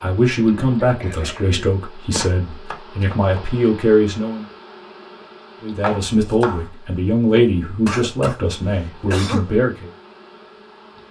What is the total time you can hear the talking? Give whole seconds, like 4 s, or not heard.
9 s.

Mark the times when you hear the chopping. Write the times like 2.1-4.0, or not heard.
2.1-3.4, 5.8-6.7.